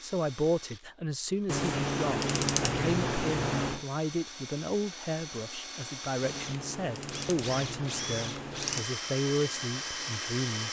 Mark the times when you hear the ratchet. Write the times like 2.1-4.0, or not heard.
1.4-3.8, 6.2-8.8.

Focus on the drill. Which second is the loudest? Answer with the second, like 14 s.
10 s.